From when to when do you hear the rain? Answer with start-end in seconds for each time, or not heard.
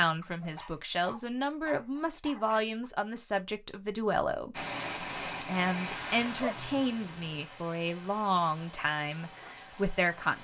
4.5-10.3.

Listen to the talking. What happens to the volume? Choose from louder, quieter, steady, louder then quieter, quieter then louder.
steady.